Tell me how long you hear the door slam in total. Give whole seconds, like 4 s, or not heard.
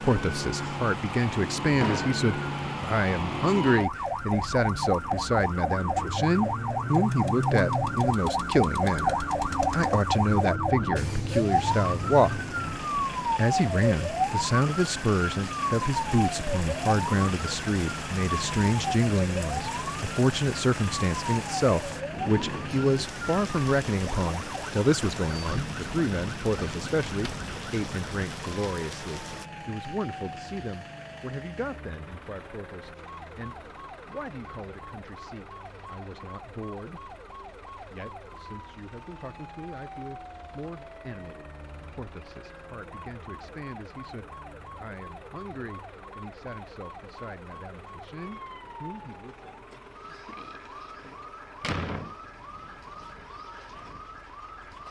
2 s.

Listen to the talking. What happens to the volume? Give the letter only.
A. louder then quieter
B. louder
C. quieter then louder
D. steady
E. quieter
E.